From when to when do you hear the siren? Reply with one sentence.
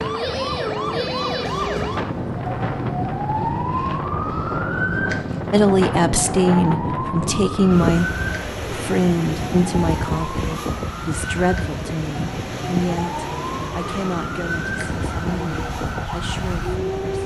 The siren can be heard from 0.0 to 17.2 s.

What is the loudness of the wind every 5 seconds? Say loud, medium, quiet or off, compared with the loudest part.
loud, loud, loud, medium.